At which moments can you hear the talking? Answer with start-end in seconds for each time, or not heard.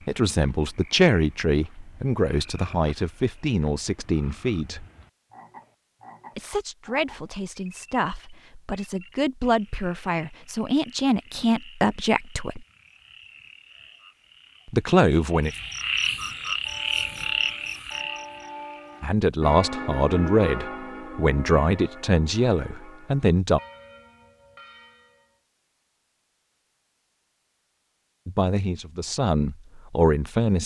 0.1-4.8, 6.3-12.6, 14.7-15.5, 19.0-23.6, 28.2-30.6.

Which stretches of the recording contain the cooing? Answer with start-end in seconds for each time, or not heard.
not heard.